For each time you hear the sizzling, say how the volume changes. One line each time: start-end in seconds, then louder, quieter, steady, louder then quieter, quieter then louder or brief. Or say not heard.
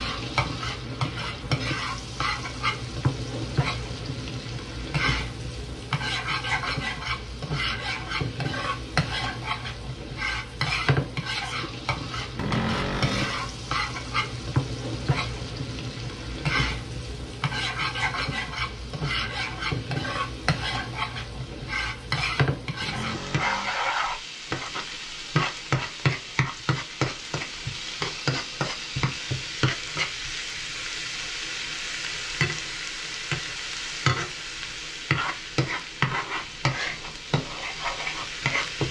0.0-38.8 steady.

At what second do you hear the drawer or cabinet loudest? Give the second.
13 s.